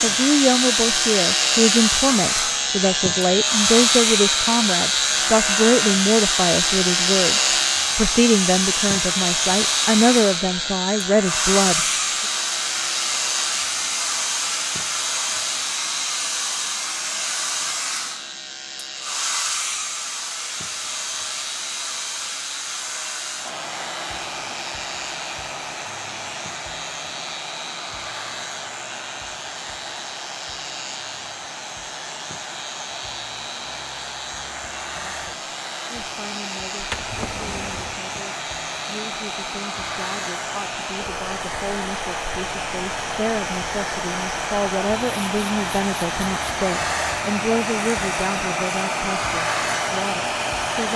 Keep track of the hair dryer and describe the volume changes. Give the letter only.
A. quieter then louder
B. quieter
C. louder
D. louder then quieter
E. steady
A.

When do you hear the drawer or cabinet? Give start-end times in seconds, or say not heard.
36.8-38.0.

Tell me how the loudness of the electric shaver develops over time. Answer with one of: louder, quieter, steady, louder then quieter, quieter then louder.
quieter.